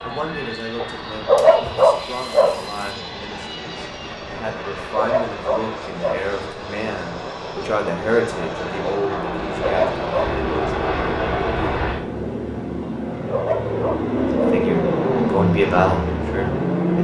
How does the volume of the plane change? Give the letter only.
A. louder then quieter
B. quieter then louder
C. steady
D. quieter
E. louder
E.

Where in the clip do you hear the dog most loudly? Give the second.
1 s.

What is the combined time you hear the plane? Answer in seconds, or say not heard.
17 s.